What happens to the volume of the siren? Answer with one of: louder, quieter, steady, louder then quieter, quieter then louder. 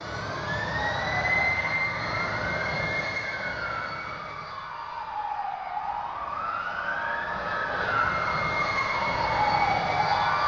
louder.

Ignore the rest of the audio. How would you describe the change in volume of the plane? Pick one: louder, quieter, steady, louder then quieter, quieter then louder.
quieter then louder.